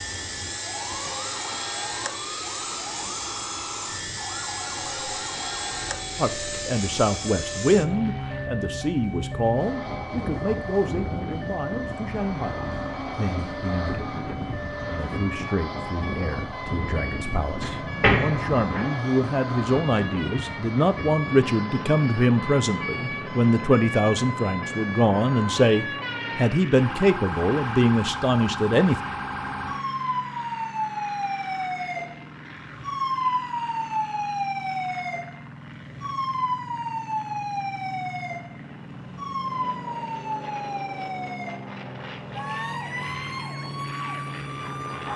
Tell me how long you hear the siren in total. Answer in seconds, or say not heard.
45 s.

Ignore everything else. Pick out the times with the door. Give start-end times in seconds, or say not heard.
17.6-18.9.